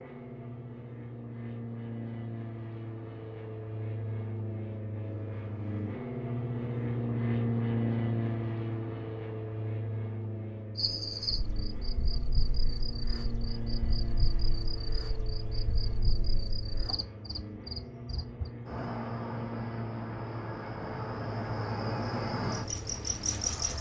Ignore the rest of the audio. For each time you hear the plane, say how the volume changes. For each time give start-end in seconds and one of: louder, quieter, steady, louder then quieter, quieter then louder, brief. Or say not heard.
0.0-23.7 louder then quieter.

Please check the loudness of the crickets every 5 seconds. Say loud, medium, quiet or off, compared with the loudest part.
off, off, medium, medium, loud.